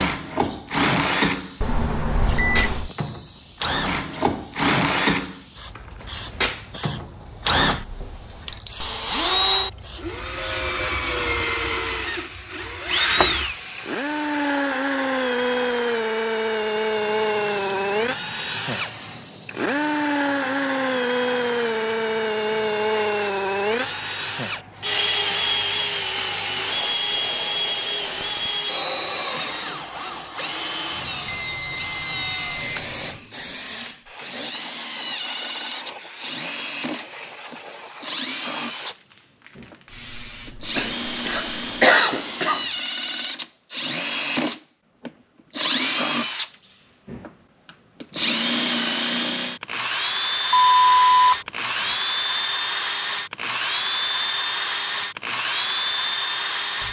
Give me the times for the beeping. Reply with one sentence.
The beeping can be heard from 1.6 to 2.9 s, from 31.2 to 33.1 s and from 50.5 to 51.9 s.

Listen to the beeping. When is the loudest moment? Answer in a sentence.
The volume of the beeping peaks at 51 seconds.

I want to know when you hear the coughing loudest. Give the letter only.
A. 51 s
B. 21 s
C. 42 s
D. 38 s
C.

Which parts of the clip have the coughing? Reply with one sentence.
The coughing can be heard from 40.8 to 42.6 s.